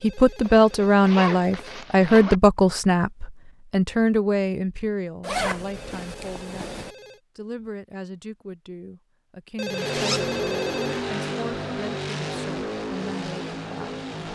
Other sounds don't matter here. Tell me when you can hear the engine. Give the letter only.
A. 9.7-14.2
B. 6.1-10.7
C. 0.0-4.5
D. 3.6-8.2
A.